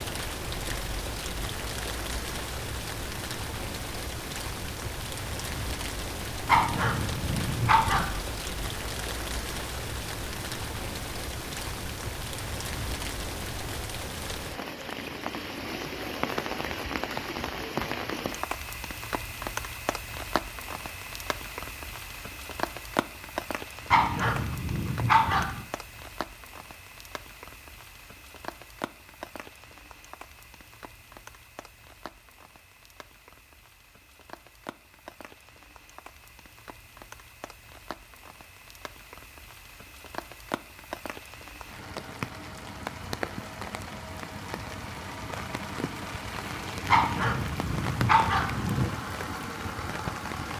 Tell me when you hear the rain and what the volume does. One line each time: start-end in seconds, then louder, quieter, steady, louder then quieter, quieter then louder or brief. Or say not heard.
0.0-50.5 quieter then louder.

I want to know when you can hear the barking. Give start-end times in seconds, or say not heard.
6.5-8.1, 23.9-25.6, 46.9-48.9.